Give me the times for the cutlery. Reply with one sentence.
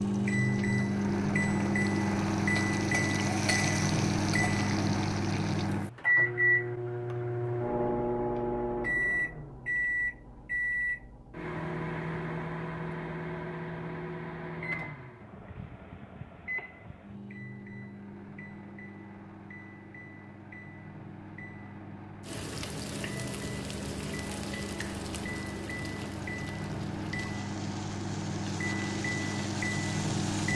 The cutlery can't be heard in this clip.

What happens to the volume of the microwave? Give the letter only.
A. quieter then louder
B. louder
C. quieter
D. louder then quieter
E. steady
A.